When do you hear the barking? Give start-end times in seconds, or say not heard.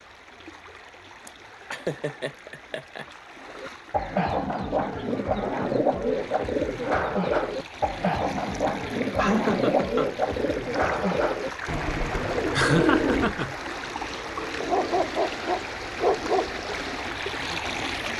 14.6-16.6.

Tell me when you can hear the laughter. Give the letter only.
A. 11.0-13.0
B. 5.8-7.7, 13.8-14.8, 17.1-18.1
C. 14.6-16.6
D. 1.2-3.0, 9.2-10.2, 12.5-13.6
D.